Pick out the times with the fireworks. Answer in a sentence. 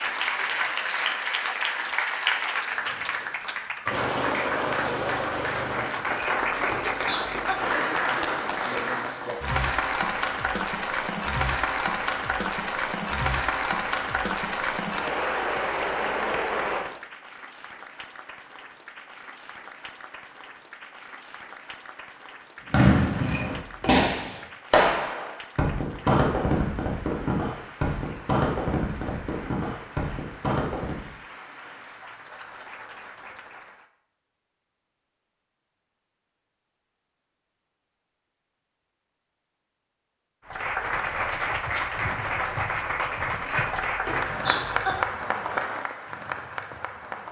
You can hear the fireworks from 22.7 to 31.0 s.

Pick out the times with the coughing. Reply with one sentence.
The coughing can be heard from 6.0 to 7.6 s, from 23.1 to 24.1 s and from 43.4 to 45.0 s.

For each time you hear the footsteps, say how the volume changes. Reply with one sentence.
The footsteps can't be heard in this clip.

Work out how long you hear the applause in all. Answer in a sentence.
You can hear the applause for 41 seconds altogether.